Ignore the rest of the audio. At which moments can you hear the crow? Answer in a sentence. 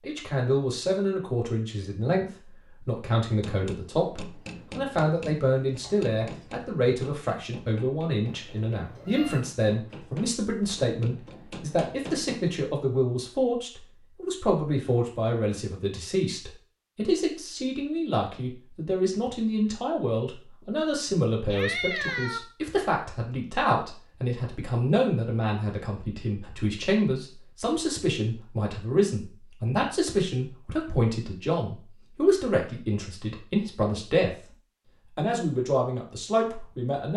You can't hear the crow here.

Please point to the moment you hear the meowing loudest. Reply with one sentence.
The loudest moment of the meowing is at 22 seconds.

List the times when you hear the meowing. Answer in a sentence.
You can hear the meowing from 8.2 to 9.4 s and from 21.5 to 22.4 s.